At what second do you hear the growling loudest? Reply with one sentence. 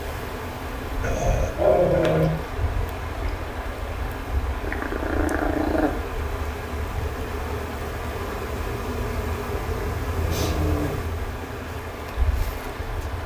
The volume of the growling peaks at 2 seconds.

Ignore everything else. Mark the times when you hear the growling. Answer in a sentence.
You can hear the growling from 1.0 to 2.3 s, from 4.6 to 5.9 s and from 9.5 to 10.9 s.